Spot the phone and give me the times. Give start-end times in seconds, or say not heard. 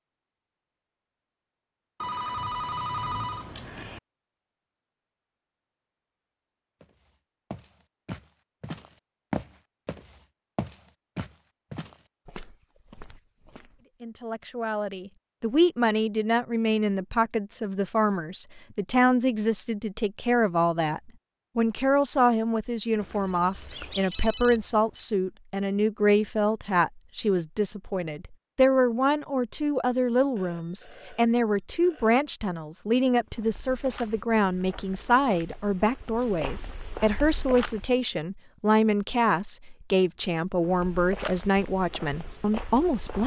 2.0-4.0, 22.9-24.8, 30.4-32.2.